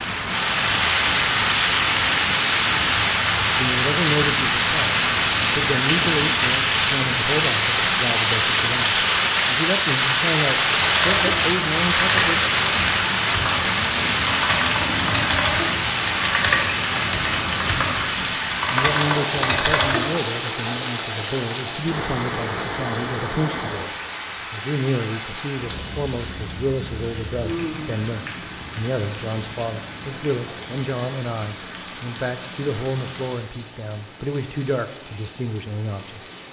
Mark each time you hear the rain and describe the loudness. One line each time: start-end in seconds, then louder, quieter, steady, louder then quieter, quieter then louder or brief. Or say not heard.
0.0-36.4 quieter.